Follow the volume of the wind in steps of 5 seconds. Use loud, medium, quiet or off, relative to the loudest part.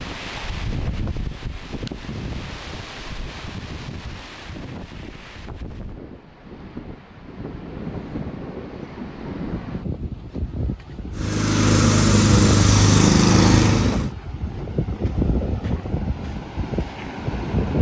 medium, medium, loud, loud.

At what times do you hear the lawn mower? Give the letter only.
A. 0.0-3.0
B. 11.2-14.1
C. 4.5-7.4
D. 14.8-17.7
B.